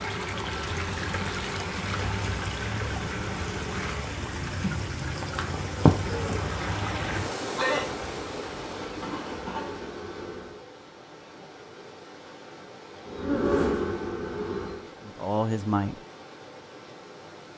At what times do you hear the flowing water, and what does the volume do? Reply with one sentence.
You can hear the flowing water from 0.0 to 17.5 s, getting quieter.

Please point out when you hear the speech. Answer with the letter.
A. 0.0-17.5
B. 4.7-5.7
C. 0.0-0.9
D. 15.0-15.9
D.